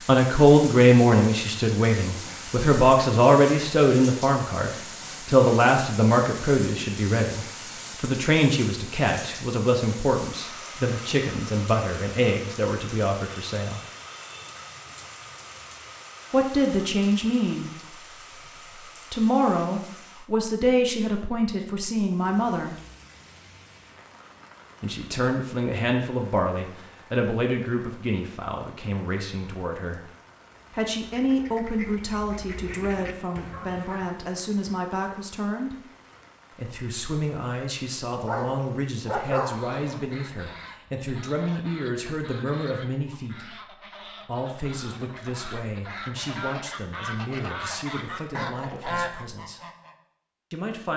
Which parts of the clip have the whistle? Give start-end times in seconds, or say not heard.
not heard.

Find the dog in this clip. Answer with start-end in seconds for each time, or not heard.
38.2-39.8.